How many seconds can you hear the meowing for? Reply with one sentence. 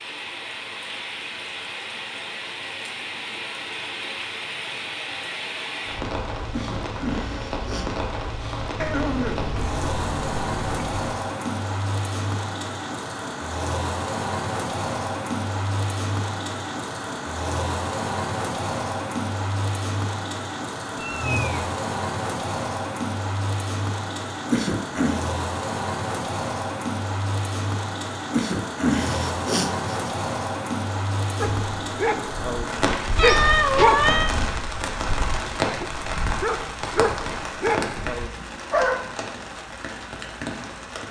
The meowing can be heard for 4 seconds in total.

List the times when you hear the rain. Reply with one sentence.
The rain can be heard from 0.0 to 41.0 s.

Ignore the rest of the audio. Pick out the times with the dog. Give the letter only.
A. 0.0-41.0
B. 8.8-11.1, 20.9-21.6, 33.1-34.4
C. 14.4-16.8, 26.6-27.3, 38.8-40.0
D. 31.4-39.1
D.